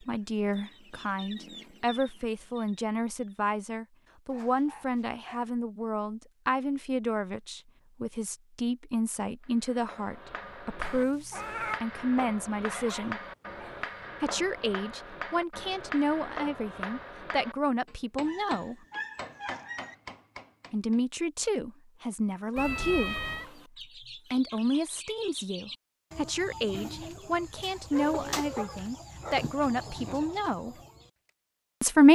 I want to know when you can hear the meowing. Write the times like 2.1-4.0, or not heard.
10.8-11.8, 22.6-23.5.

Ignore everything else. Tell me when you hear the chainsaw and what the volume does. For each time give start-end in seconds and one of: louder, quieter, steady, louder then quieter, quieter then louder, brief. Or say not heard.
not heard.